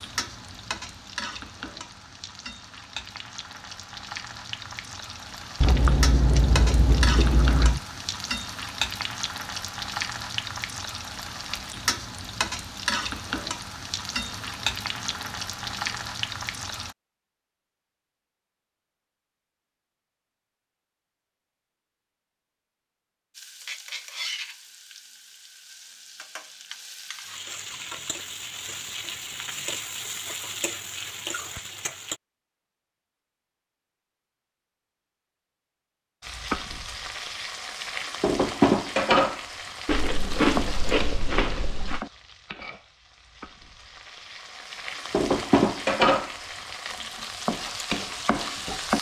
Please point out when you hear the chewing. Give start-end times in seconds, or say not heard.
5.6-7.8, 14.2-15.8, 27.7-30.1, 39.9-42.0.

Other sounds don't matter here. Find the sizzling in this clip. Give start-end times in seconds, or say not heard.
0.0-16.9, 23.4-32.2, 36.2-48.9.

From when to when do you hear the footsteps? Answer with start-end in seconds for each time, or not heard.
not heard.